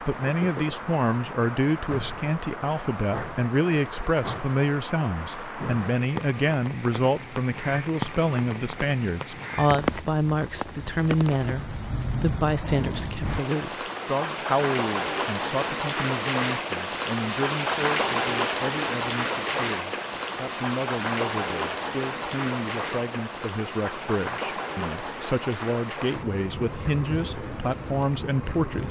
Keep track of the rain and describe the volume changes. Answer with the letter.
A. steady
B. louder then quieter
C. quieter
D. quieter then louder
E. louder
B.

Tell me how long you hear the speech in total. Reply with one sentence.
The speech can be heard for 29 seconds in total.